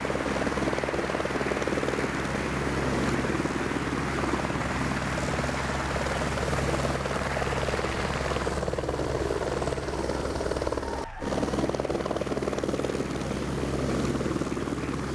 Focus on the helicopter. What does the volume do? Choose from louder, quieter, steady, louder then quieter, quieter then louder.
steady.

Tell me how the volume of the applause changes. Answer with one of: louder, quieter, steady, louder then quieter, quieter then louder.
quieter.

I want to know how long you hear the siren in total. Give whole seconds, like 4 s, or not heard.
not heard.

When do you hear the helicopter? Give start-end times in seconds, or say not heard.
0.0-15.1.